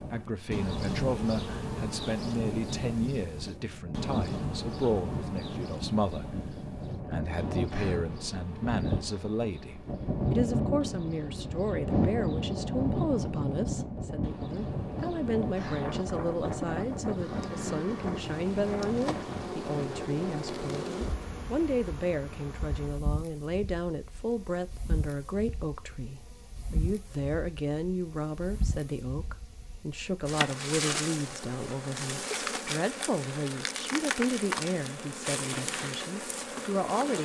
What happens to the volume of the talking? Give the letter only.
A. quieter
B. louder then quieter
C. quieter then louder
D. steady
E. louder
D.